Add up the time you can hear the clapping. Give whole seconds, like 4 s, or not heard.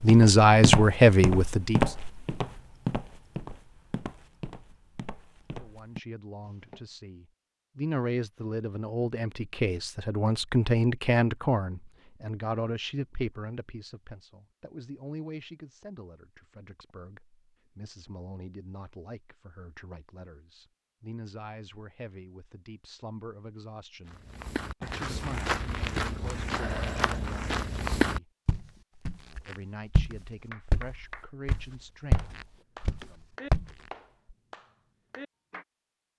5 s.